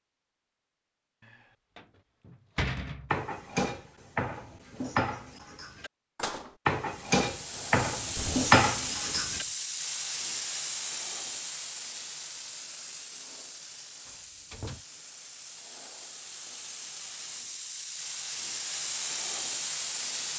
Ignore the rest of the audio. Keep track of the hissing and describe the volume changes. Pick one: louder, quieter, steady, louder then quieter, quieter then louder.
quieter then louder.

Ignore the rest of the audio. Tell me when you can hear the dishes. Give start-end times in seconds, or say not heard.
3.1-9.4.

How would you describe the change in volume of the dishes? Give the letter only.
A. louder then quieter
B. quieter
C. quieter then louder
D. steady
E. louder
E.